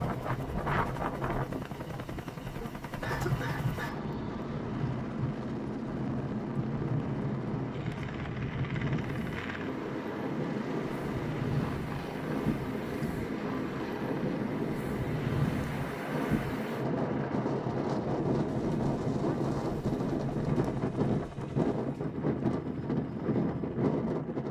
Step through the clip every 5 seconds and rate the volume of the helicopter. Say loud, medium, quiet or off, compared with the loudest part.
loud, loud, loud, medium, medium.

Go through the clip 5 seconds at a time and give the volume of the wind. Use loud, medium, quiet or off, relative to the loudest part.
medium, medium, loud, loud, loud.